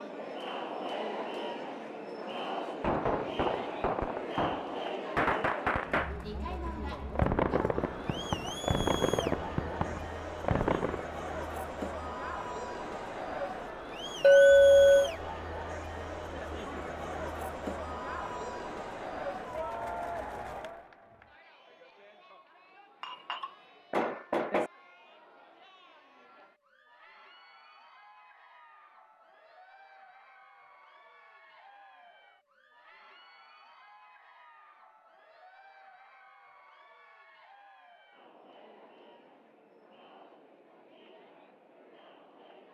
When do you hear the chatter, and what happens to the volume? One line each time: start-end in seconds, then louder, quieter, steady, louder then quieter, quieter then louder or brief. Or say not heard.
0.0-42.6 quieter.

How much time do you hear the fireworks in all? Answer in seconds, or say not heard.
8 s.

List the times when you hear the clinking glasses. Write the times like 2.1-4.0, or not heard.
14.2-15.1, 23.0-24.7.